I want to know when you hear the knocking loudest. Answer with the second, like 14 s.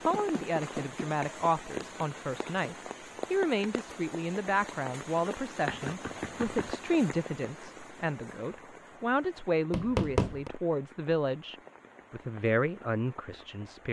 10 s.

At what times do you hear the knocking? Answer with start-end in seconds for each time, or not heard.
0.1-1.0, 5.7-7.0, 9.7-10.5.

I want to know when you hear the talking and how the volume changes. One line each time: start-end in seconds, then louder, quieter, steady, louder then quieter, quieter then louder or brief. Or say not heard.
0.1-13.8 steady.